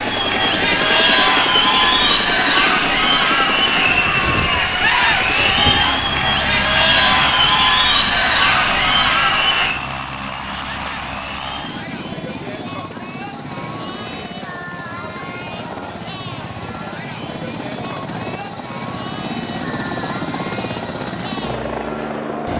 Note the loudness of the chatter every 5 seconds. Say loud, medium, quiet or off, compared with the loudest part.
loud, loud, quiet, quiet, quiet.